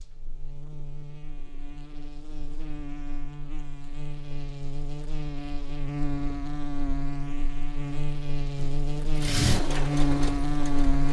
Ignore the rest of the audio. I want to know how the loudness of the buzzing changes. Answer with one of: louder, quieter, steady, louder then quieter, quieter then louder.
louder.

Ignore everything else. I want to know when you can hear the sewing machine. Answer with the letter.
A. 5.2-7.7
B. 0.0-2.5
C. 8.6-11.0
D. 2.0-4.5
C.